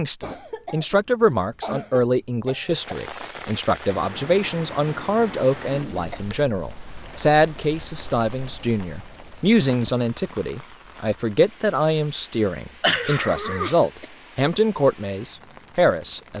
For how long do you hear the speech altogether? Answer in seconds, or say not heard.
16 s.